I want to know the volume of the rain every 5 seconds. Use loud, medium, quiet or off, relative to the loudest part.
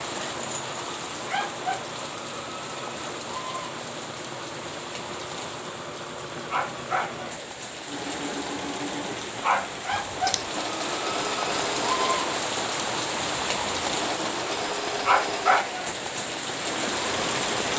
medium, medium, loud, loud.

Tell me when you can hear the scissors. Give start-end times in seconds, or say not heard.
9.9-10.4.